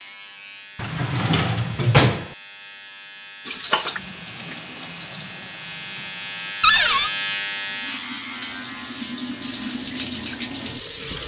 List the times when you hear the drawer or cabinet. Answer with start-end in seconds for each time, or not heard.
0.8-2.3, 6.6-7.1.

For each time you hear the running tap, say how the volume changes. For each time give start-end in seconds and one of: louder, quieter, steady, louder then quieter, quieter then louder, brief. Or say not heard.
3.5-11.2 quieter then louder.